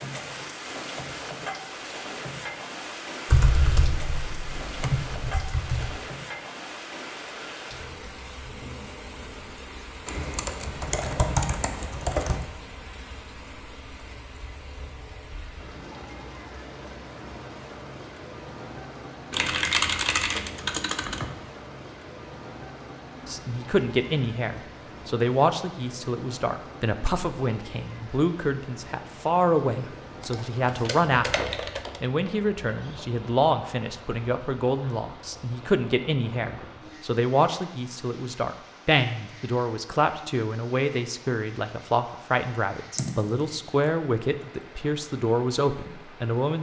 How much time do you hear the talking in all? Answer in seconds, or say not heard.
23 s.